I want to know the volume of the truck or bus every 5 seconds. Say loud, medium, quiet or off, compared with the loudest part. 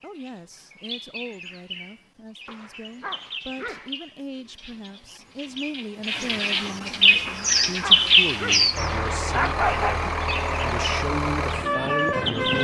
off, medium, loud.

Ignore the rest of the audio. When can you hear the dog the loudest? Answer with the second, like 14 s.
10 s.